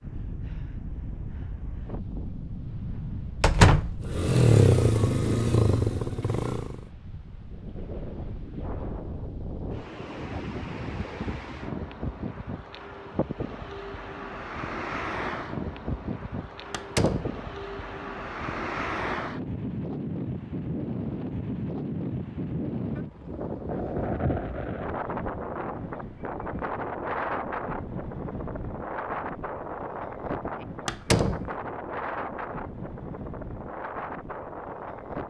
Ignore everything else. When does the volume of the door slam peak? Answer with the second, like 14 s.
4 s.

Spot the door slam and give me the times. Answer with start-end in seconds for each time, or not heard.
3.4-4.0, 16.7-17.4, 30.9-31.5.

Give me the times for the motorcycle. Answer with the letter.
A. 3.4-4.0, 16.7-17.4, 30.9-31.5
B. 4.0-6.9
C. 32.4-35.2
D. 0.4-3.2
B.